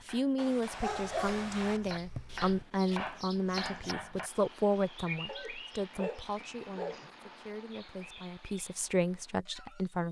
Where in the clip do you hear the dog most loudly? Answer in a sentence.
The loudest moment of the dog is at 1 second.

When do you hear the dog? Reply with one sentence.
The dog can be heard from 0.3 to 1.8 s and from 5.2 to 7.0 s.